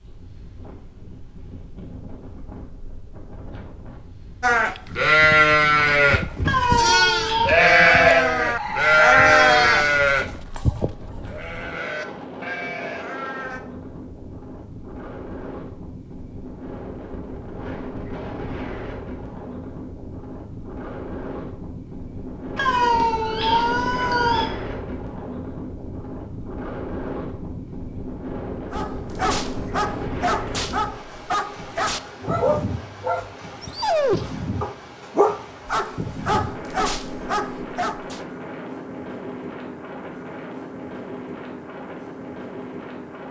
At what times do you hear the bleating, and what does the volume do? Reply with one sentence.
You can hear the bleating from 4.4 to 13.6 s, getting quieter.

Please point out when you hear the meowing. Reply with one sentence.
The meowing can be heard from 6.5 to 7.5 s and from 22.6 to 24.4 s.